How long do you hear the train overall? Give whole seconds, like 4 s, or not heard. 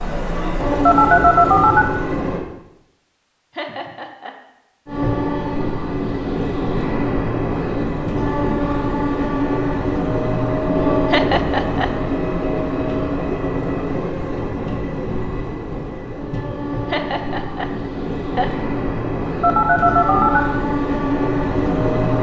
20 s.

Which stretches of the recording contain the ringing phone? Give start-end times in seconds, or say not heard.
0.8-1.9, 19.4-20.4.